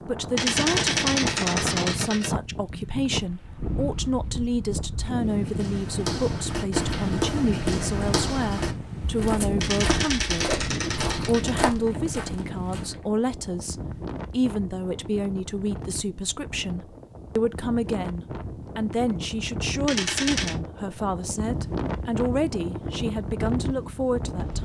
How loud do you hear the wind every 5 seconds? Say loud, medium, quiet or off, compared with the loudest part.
loud, loud, loud, medium, loud.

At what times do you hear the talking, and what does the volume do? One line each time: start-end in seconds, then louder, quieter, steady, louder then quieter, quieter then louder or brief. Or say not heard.
0.1-24.6 steady.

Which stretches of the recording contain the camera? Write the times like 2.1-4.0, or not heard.
0.3-2.3, 9.6-11.6, 19.9-20.6.